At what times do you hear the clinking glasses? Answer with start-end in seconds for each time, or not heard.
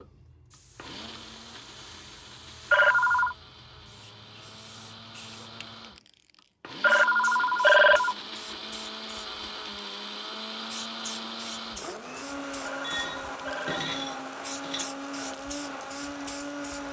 12.8-14.8.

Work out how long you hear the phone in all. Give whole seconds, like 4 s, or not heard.
3 s.